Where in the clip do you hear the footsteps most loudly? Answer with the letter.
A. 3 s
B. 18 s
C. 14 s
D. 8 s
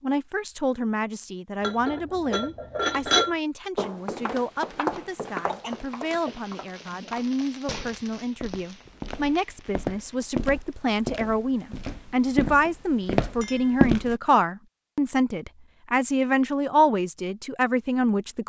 C.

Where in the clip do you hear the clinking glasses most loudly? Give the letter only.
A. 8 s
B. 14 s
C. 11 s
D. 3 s
D.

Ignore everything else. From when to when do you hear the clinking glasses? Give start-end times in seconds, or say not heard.
1.6-3.4, 13.4-13.8.